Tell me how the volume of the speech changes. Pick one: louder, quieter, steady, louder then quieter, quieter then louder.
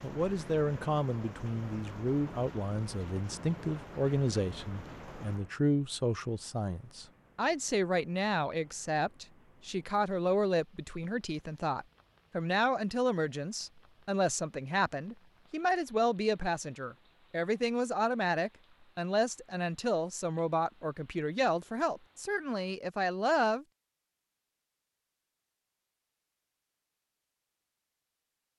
steady.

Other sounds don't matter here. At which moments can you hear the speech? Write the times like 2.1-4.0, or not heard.
0.0-23.6.